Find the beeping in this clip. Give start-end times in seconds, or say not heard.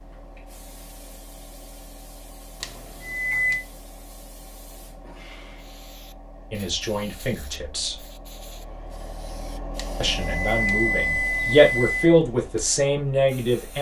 2.6-3.6, 9.8-12.2.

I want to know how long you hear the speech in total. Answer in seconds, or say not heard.
5 s.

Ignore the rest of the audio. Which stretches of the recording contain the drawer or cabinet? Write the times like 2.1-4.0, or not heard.
not heard.